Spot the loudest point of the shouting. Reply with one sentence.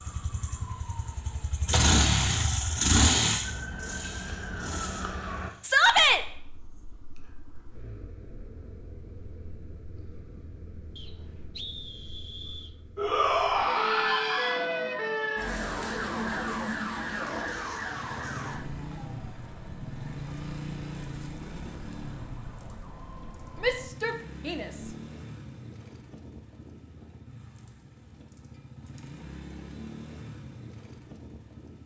The volume of the shouting peaks at 6 seconds.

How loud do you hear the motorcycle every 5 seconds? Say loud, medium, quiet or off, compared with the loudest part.
loud, quiet, quiet, quiet, quiet, quiet, quiet.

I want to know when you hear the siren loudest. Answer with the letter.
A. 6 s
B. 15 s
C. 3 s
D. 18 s
B.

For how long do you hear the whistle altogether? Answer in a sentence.
The whistle can be heard for 2 seconds in total.